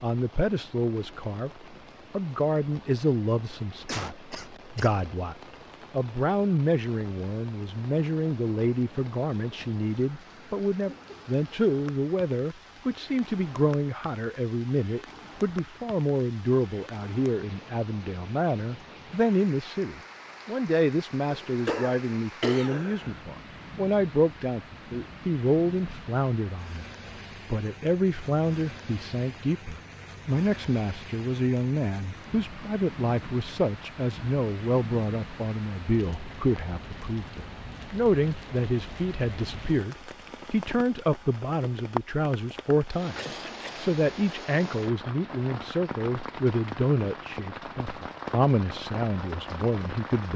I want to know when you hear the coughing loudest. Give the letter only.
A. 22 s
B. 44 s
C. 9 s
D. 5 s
A.